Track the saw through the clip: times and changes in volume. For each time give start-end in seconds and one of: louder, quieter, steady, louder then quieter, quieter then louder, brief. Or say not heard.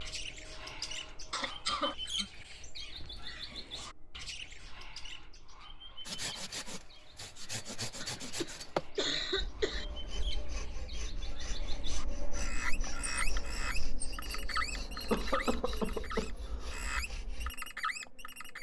6.0-17.6 quieter.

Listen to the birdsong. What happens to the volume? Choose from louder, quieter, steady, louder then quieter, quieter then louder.
quieter then louder.